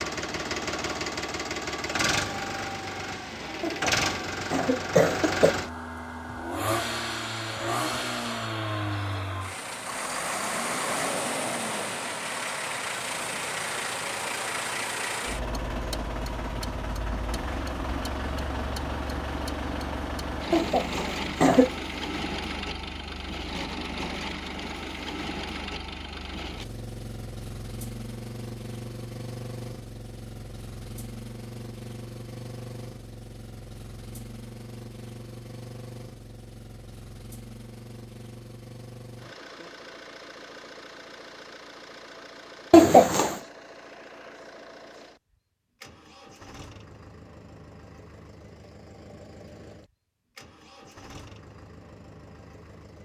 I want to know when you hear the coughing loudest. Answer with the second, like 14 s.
43 s.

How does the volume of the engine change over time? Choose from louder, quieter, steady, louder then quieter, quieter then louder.
quieter.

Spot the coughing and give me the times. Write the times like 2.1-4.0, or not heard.
3.6-5.5, 20.5-21.7, 42.7-43.4.